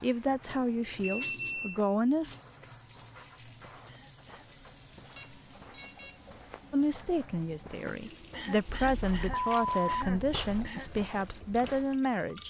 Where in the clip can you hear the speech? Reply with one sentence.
The speech can be heard from 0.0 to 2.4 s and from 6.7 to 12.4 s.